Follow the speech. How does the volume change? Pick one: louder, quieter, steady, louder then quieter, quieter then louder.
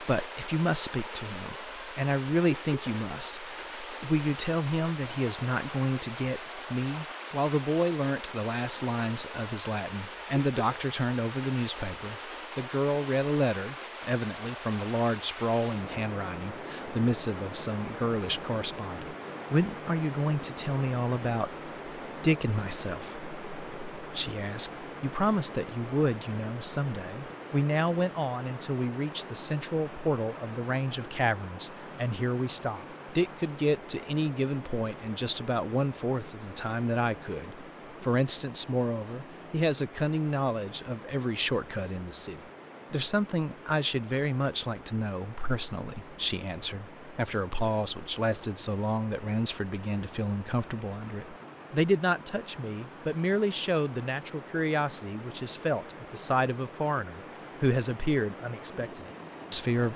steady.